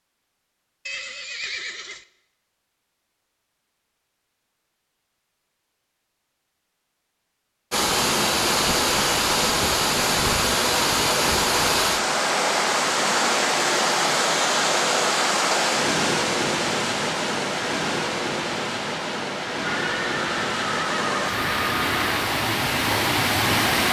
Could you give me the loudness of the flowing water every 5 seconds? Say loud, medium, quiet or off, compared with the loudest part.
off, loud, loud, loud, loud.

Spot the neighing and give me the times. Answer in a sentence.
You can hear the neighing from 0.8 to 2.0 s and from 19.6 to 22.1 s.